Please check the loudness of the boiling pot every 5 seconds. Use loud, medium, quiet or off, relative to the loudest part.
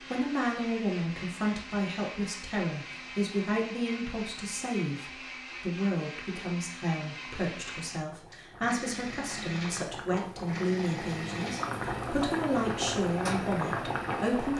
off, quiet, loud.